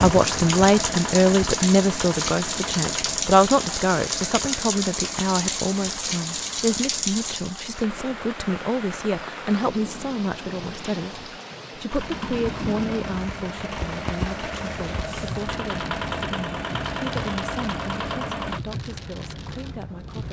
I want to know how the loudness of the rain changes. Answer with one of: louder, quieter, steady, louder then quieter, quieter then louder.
quieter.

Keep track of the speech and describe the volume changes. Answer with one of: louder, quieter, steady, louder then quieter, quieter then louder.
quieter.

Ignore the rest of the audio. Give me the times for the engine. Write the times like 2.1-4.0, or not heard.
0.0-7.8, 11.9-18.6.